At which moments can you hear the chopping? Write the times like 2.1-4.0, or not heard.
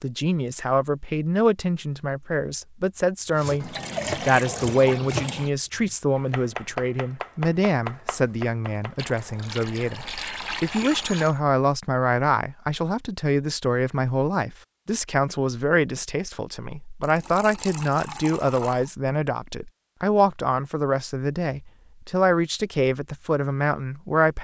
3.4-9.0.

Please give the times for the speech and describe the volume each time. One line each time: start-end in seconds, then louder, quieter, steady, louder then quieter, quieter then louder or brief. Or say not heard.
0.0-24.3 steady.